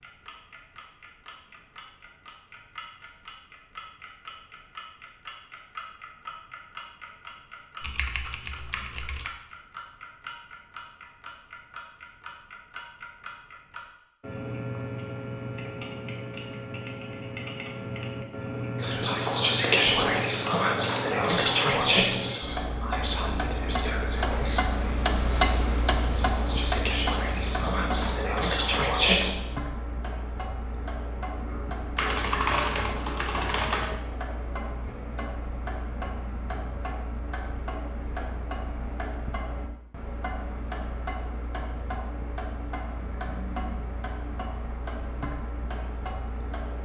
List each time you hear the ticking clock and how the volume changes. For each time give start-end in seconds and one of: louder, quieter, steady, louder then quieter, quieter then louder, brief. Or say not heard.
0.0-46.8 louder then quieter.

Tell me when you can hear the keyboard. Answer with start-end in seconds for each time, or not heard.
7.8-9.3, 31.9-34.0.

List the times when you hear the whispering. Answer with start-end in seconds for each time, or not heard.
18.8-29.4.